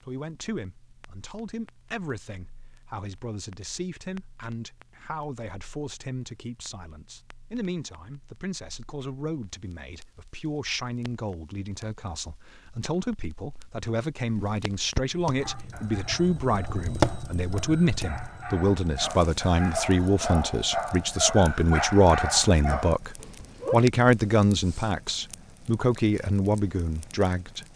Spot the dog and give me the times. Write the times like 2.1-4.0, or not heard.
15.3-23.8.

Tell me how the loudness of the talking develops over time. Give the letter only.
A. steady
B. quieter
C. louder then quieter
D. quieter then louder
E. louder
E.